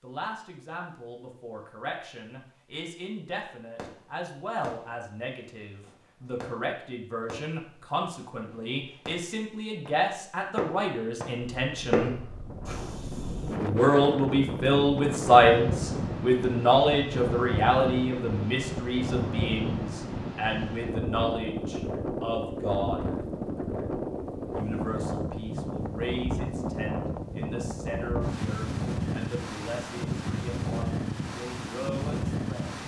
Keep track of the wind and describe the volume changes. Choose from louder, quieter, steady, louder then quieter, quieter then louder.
steady.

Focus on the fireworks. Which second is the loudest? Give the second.
12 s.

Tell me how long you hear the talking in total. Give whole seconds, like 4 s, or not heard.
30 s.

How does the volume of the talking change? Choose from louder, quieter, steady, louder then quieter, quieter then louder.
louder then quieter.